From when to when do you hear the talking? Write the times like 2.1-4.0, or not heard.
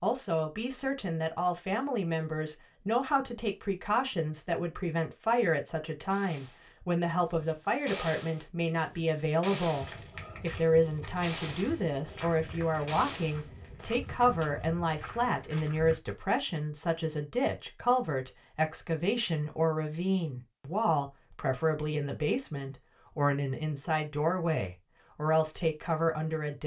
0.0-26.6.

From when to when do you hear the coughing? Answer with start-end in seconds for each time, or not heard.
not heard.